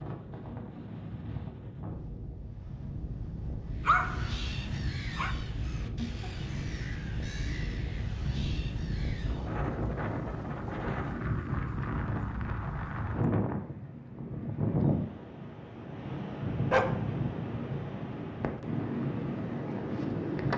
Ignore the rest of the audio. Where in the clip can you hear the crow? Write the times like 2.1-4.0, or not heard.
3.7-9.6.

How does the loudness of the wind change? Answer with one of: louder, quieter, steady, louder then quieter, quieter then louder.
louder.